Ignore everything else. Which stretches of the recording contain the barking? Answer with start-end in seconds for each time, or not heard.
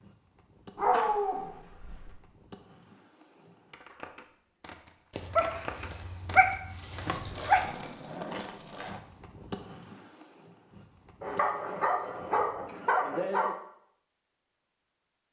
0.8-2.1, 5.2-7.7, 11.2-13.6.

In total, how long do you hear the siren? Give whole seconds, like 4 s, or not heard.
not heard.